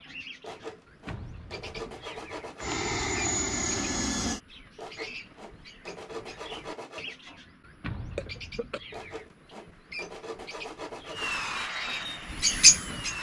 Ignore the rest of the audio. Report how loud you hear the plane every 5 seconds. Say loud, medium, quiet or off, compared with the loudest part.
loud, off, medium.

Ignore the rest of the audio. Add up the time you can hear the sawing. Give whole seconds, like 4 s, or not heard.
7 s.